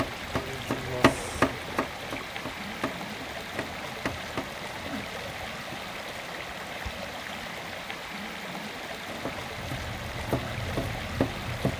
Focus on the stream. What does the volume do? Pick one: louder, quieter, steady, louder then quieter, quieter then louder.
steady.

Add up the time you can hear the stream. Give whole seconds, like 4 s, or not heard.
12 s.